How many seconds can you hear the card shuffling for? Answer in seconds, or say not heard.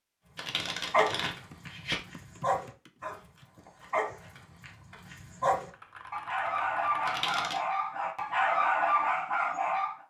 2 s.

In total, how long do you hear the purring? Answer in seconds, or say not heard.
not heard.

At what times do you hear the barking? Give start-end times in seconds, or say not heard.
0.6-9.9.